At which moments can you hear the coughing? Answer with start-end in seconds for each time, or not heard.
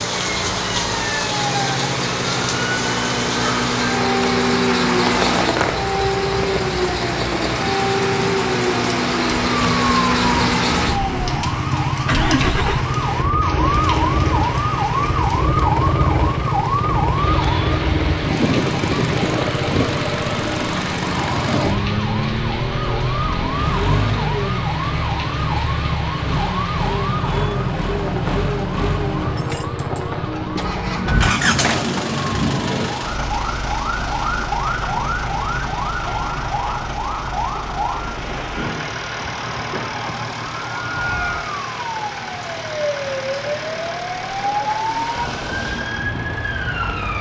not heard.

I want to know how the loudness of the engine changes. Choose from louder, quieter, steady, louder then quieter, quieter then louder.
quieter.